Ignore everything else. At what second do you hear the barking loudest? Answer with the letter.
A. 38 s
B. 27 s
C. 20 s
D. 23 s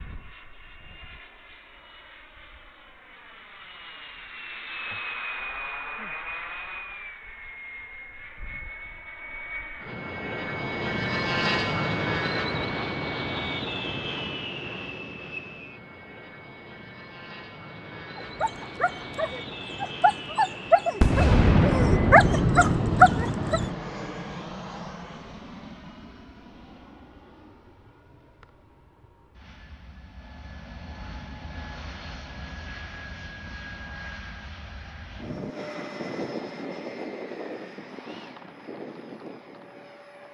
D.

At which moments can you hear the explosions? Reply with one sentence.
The explosions can be heard from 21.0 to 23.8 s.